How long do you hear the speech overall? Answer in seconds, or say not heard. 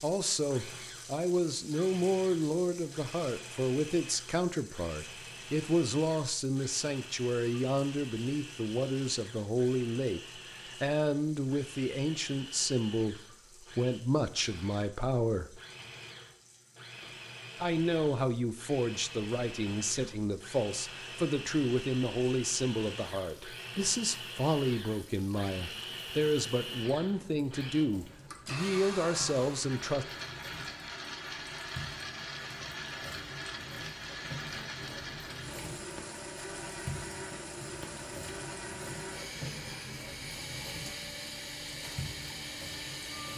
28 s.